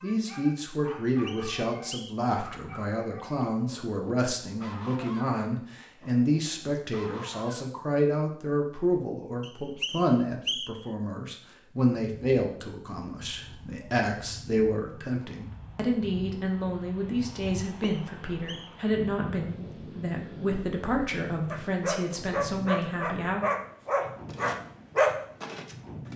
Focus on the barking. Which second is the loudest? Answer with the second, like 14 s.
25 s.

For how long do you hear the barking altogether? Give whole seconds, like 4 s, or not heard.
12 s.